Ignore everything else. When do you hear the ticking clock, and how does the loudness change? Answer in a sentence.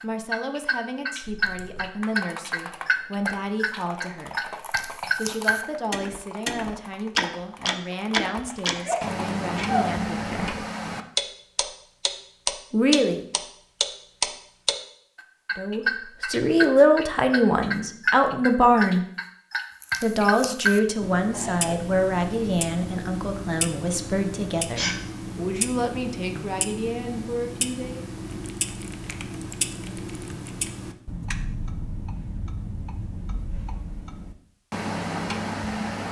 The ticking clock can be heard from 0.0 to 36.0 s, getting quieter.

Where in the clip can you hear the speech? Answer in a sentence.
The speech can be heard from 0.0 to 10.6 s, from 12.7 to 13.2 s, from 15.6 to 19.1 s and from 20.0 to 28.1 s.